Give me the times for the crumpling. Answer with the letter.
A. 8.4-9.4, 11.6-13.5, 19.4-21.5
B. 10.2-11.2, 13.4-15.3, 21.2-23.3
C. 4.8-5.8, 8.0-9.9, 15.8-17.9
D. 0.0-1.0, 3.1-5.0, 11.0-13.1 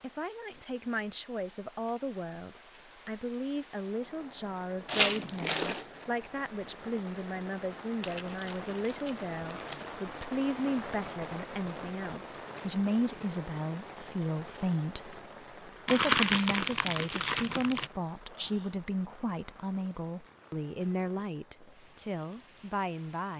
C.